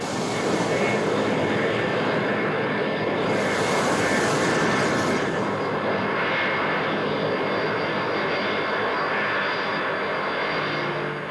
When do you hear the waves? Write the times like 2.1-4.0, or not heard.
0.0-5.8.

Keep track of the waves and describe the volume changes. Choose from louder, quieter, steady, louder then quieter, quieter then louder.
quieter then louder.